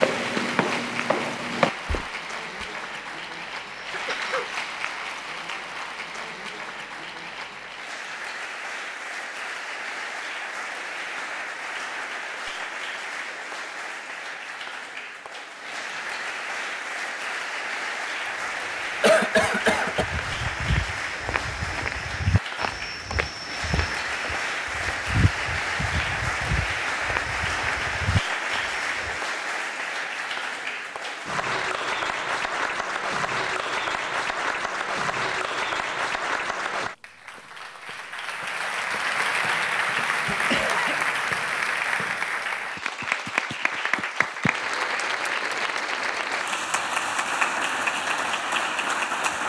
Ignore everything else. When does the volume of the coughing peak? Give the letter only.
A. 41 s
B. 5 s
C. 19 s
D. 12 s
C.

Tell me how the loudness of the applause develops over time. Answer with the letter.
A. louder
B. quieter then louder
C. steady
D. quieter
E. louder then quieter
A.